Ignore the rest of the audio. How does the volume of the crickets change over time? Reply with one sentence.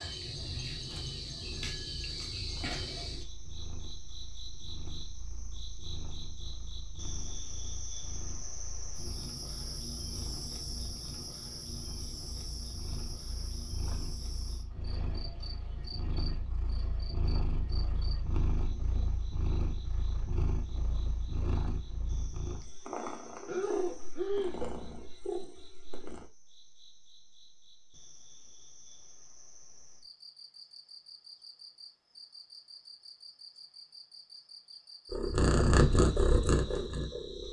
The volume of the crickets goes down, then up.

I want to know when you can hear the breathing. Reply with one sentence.
The breathing can be heard from 23.4 to 24.6 s.